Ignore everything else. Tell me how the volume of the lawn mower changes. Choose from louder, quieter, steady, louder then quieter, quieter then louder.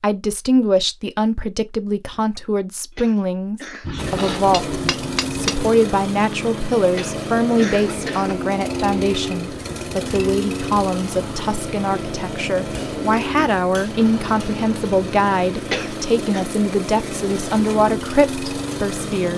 steady.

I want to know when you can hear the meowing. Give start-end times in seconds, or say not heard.
not heard.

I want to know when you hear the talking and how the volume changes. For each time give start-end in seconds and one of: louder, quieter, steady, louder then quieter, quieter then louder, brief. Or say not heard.
0.0-19.3 steady.